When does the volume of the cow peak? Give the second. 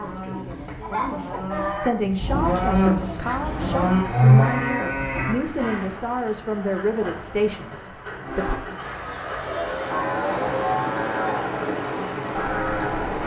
4 s.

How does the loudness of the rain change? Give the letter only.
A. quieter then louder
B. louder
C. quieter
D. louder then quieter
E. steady
B.